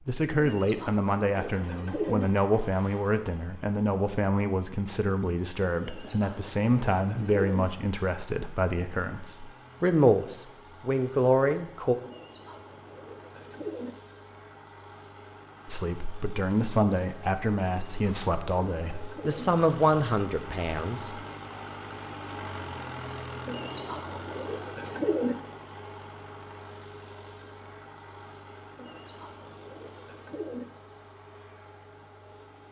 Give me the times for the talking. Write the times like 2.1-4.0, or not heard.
0.1-11.9, 15.7-21.2.